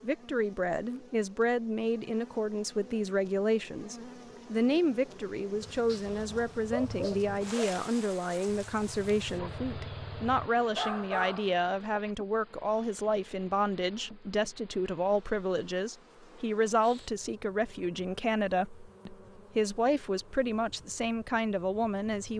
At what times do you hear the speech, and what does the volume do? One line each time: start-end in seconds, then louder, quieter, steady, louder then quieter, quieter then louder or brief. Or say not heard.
0.0-22.3 steady.